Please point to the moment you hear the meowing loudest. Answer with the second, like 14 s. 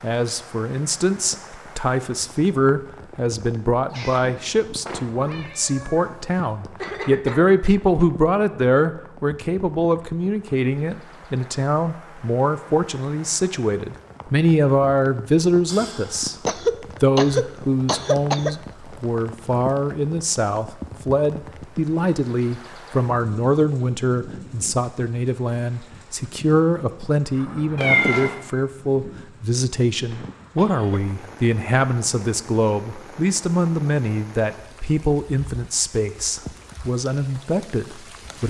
28 s.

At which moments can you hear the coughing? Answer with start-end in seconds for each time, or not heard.
6.8-8.1, 16.4-18.6, 29.9-31.0.